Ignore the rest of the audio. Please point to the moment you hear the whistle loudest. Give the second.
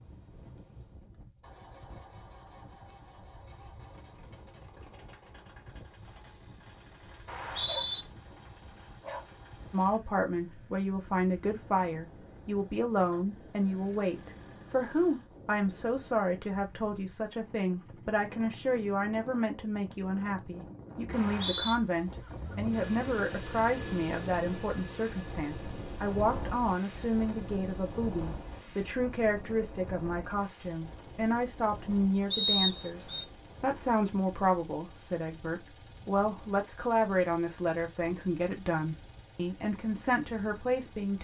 33 s.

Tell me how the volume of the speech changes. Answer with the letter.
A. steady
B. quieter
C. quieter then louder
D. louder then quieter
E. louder
A.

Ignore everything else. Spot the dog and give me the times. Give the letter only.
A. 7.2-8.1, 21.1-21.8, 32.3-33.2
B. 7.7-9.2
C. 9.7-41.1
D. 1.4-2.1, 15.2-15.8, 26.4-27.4
B.